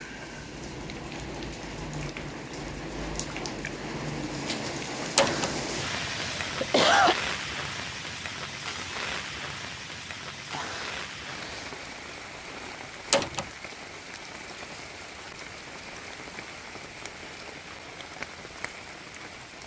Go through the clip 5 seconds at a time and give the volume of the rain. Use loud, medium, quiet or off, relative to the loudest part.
loud, loud, medium, medium.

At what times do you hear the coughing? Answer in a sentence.
You can hear the coughing from 5.2 to 7.2 s and from 10.5 to 11.8 s.